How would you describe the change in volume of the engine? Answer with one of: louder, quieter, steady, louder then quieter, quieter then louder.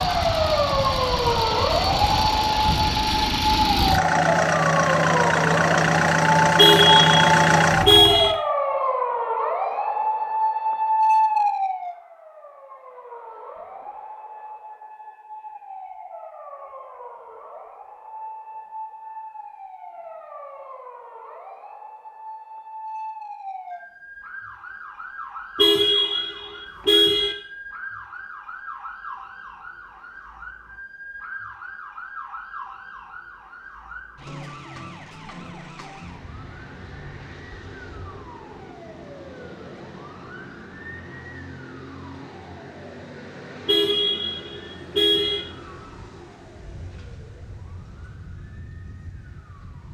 louder.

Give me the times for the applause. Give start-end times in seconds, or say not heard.
not heard.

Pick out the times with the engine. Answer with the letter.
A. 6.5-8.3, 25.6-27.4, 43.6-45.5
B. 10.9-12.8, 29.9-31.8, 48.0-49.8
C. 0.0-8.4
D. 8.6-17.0
C.